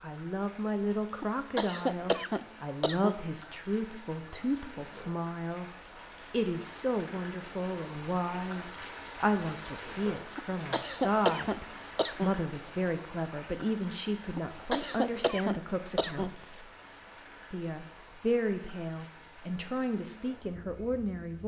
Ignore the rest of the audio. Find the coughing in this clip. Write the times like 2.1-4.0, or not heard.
1.2-3.2, 10.3-12.3, 14.3-16.4.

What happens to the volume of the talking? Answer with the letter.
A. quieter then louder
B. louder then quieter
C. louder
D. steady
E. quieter
D.